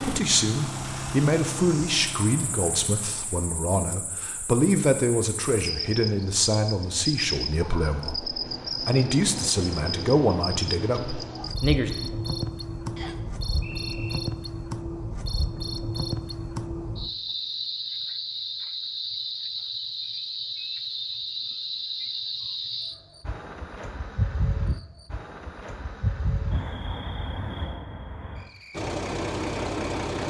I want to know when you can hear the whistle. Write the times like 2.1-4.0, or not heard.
12.9-14.2.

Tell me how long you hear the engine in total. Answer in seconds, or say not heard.
5 s.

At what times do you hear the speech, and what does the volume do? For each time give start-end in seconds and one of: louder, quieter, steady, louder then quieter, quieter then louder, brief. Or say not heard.
0.0-11.9 steady.